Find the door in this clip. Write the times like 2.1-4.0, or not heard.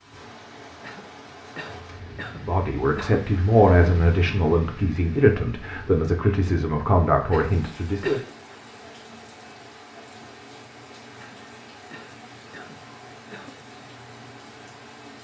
not heard.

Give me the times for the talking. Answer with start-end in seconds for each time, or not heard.
2.5-8.2.